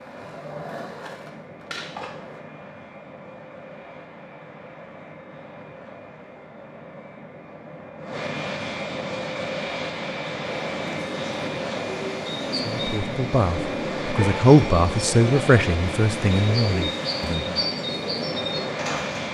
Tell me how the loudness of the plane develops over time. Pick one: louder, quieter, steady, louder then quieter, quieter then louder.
louder.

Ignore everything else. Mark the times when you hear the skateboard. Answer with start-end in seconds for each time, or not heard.
0.0-2.4.